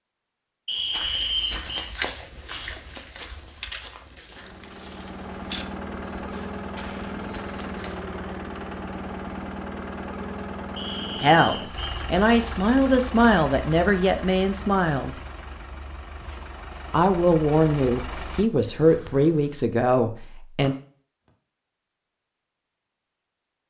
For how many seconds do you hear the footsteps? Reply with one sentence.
You can hear the footsteps for 7 seconds altogether.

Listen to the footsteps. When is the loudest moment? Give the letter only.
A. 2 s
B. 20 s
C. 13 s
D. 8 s
A.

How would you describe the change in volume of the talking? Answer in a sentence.
The volume of the talking stays about the same.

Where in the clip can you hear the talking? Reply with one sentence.
You can hear the talking from 11.2 to 15.2 s and from 16.9 to 20.8 s.